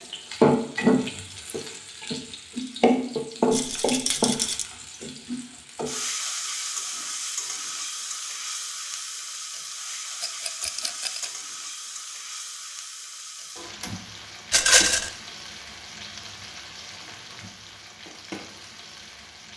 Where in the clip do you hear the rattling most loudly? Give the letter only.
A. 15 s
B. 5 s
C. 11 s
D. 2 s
A.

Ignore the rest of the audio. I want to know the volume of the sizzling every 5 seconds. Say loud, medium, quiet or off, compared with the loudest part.
loud, medium, quiet, quiet.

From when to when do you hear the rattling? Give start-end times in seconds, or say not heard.
3.5-4.7, 10.2-11.3, 14.5-15.1.